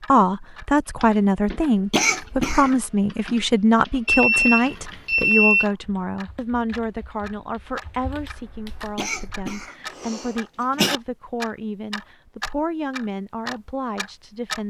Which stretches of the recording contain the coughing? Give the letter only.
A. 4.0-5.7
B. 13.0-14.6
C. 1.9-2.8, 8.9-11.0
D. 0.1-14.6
C.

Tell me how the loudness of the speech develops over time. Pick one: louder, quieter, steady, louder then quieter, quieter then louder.
quieter.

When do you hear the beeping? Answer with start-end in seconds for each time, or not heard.
4.0-5.7.